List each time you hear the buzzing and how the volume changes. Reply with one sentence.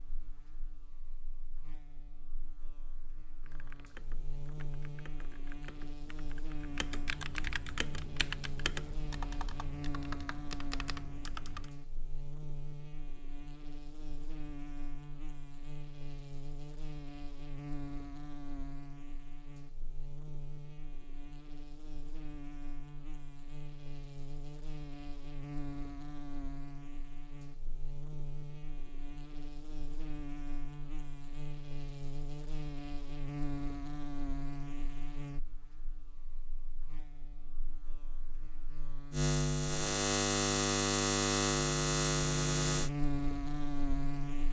You can hear the buzzing from 0.0 to 44.4 s, getting louder.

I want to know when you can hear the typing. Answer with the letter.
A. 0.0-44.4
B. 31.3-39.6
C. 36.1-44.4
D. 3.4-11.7
D.